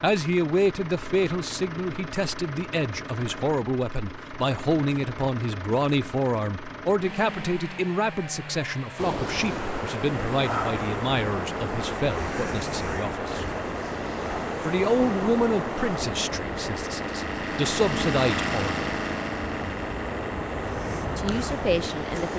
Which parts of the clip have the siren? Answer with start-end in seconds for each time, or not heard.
not heard.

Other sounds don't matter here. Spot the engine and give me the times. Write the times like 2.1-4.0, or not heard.
0.0-22.3.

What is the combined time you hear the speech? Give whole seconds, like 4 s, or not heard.
19 s.